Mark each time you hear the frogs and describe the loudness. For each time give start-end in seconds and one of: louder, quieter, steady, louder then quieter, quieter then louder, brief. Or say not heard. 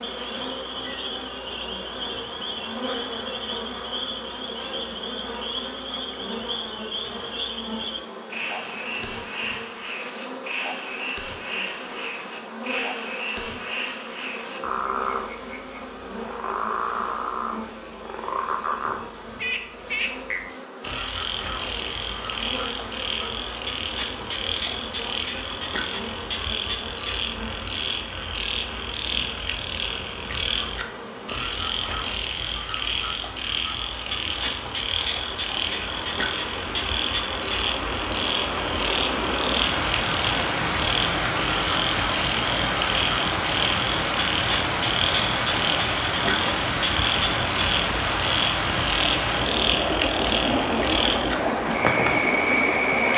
0.0-53.1 louder.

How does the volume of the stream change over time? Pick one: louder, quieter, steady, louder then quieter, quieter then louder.
louder.